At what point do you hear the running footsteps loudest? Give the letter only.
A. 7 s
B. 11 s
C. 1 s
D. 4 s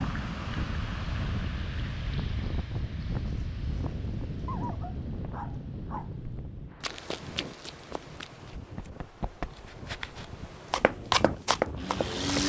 B.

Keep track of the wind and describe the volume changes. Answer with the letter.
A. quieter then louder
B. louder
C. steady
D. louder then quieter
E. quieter
E.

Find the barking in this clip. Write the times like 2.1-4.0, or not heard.
4.5-6.3.